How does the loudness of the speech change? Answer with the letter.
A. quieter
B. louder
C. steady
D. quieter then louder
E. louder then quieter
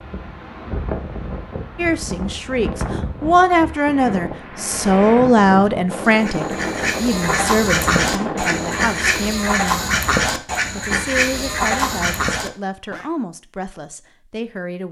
A.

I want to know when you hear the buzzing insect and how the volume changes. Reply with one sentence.
You can't hear the buzzing insect here.